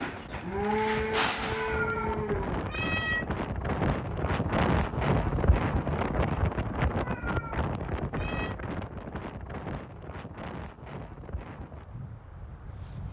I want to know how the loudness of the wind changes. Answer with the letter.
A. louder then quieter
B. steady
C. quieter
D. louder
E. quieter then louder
A.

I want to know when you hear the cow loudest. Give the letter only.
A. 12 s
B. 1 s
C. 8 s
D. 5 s
B.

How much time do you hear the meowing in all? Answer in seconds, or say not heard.
3 s.